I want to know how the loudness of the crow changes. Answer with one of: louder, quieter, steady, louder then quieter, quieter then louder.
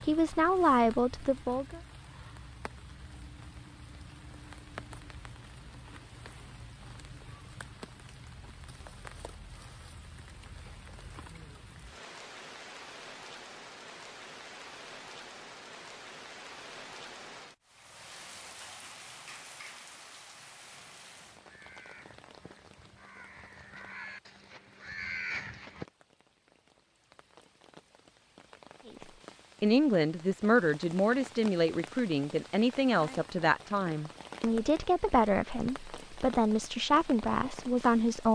louder.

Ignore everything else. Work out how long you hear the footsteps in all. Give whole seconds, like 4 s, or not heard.
not heard.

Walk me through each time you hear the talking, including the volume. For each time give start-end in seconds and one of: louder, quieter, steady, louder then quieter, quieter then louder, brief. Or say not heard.
0.0-1.8 brief
29.6-38.3 steady.